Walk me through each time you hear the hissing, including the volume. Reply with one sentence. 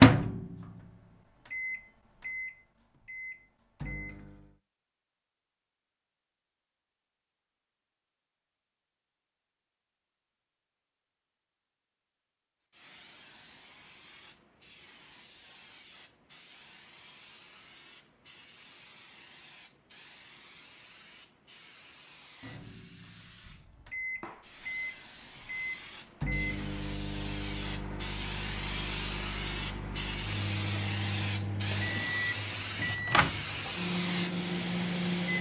The hissing can be heard from 12.6 to 35.3 s, getting louder.